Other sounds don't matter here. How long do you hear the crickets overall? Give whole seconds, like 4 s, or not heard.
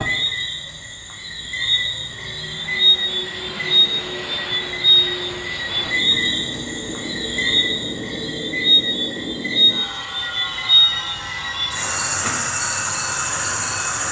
14 s.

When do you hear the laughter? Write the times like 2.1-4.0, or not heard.
not heard.